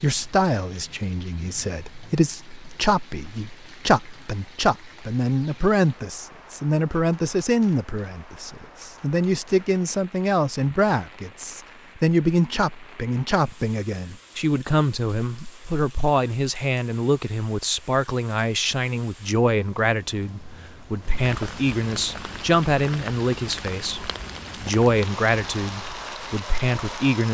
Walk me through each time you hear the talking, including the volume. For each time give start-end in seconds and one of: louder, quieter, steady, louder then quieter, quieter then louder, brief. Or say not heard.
0.0-27.2 steady.